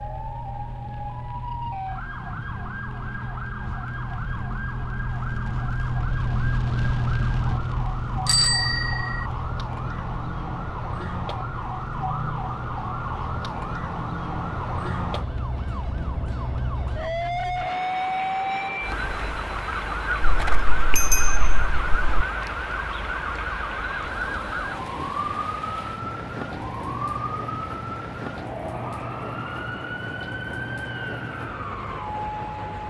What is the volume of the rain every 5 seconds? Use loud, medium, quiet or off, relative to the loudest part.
medium, loud, medium, medium, medium, medium, medium.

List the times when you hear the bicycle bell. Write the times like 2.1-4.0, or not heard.
8.2-9.2, 20.2-22.2.